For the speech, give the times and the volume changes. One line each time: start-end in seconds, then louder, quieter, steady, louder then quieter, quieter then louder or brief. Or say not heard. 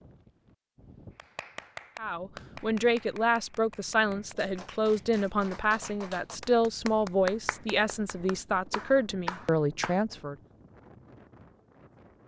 1.9-10.3 steady.